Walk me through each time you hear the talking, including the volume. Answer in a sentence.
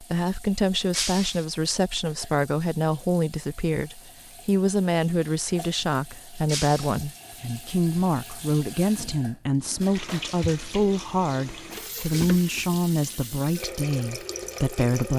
The talking can be heard from 0.0 to 15.1 s, at a steady volume.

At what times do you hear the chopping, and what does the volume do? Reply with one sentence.
You can't hear the chopping here.